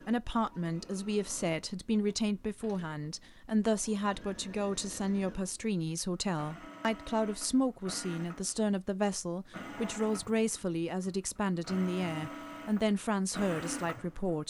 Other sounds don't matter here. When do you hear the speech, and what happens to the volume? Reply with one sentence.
The speech can be heard from 0.1 to 14.4 s, at a steady volume.